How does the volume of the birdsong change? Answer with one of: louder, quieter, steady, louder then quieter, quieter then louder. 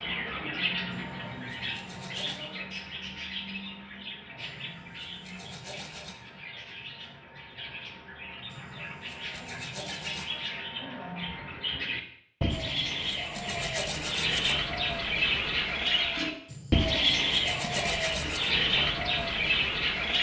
quieter then louder.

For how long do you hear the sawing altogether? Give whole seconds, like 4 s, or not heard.
9 s.